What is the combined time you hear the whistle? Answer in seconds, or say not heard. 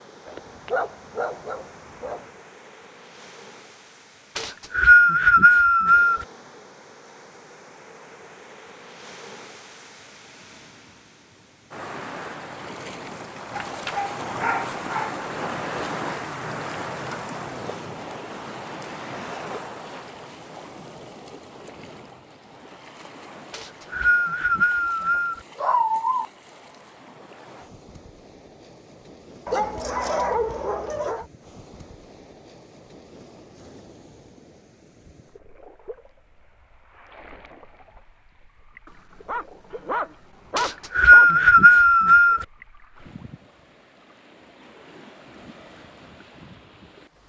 6 s.